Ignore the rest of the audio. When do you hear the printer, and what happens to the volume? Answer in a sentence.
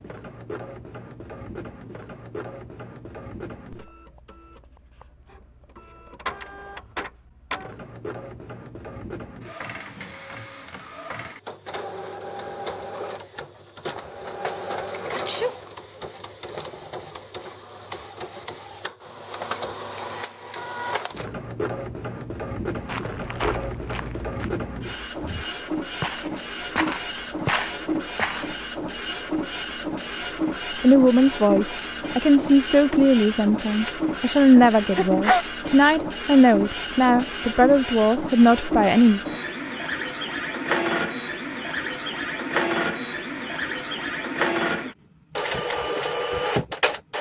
You can hear the printer from 0.0 to 47.1 s, getting louder.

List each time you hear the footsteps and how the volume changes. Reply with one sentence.
The footsteps can be heard from 22.6 to 28.6 s, getting quieter then louder.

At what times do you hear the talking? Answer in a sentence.
You can hear the talking from 30.8 to 39.2 s.